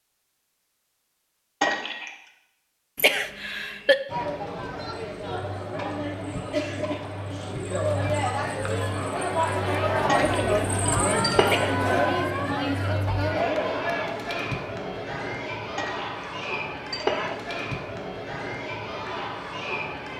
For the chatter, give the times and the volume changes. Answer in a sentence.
You can hear the chatter from 4.0 to 20.1 s, getting louder then quieter.